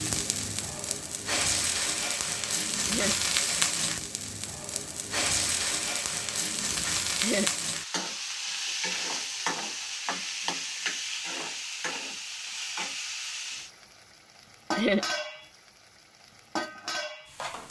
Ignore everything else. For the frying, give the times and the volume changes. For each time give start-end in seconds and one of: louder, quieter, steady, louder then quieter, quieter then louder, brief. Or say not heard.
0.0-17.6 quieter.